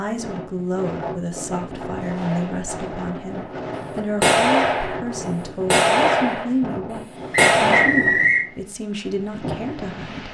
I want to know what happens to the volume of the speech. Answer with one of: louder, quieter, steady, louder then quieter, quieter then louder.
steady.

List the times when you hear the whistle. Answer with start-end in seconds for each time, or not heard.
7.3-8.4.